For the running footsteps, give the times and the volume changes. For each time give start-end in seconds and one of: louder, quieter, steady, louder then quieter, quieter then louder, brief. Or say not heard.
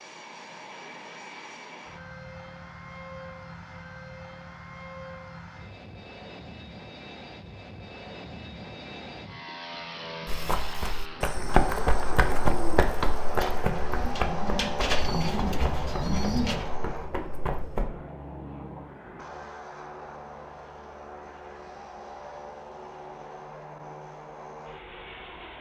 10.2-17.9 quieter.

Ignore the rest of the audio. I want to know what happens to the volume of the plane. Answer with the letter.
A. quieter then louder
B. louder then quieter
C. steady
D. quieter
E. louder
B.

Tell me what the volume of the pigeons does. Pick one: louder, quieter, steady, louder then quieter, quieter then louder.
quieter then louder.